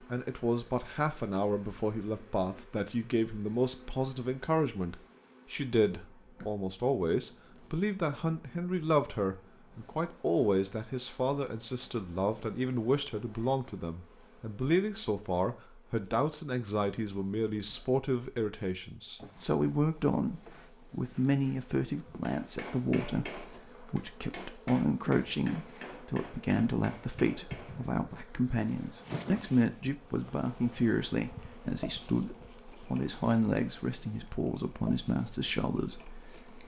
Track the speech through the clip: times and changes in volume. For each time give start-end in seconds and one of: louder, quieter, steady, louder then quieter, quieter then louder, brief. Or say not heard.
0.1-36.5 steady.